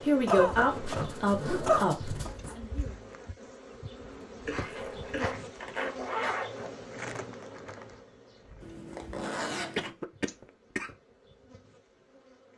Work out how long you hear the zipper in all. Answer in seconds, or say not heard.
6 s.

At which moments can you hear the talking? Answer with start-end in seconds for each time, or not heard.
0.0-3.1.